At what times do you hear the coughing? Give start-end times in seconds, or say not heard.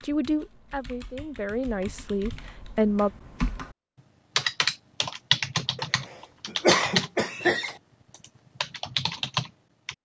5.8-7.8.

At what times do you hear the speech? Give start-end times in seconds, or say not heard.
0.0-3.1.